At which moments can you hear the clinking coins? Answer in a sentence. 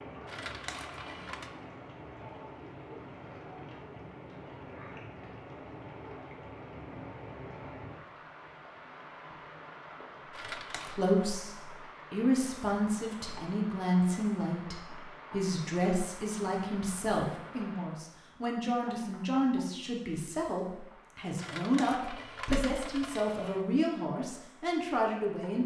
You can hear the clinking coins from 0.2 to 1.5 s, from 10.3 to 11.0 s and from 21.4 to 23.6 s.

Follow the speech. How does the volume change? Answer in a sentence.
The volume of the speech stays about the same.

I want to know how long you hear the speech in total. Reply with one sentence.
The speech can be heard for 15 seconds in total.